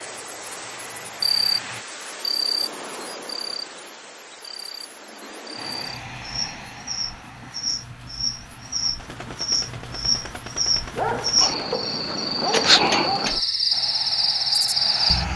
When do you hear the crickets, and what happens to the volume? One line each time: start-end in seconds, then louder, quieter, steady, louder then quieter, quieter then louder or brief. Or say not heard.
0.0-15.3 quieter then louder.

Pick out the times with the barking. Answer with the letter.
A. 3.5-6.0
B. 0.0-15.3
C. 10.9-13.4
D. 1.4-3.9
C.